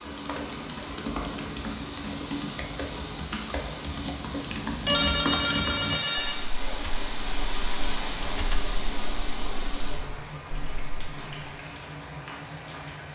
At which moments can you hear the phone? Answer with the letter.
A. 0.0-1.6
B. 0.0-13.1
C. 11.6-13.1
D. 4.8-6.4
D.